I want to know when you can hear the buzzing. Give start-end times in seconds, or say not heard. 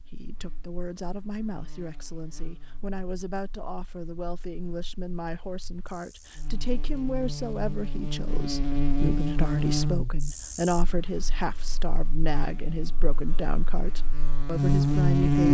0.1-15.5.